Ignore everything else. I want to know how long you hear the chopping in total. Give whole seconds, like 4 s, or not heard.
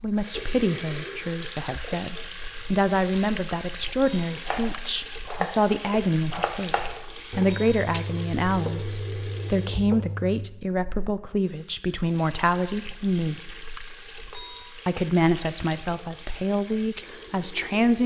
6 s.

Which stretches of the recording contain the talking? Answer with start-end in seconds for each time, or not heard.
0.0-13.4, 14.8-18.0.